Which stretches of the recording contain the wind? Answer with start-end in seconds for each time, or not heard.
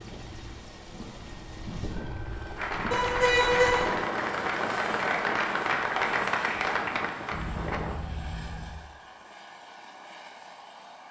0.0-8.0.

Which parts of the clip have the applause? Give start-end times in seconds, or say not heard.
2.5-7.8.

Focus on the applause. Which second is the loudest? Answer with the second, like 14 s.
6 s.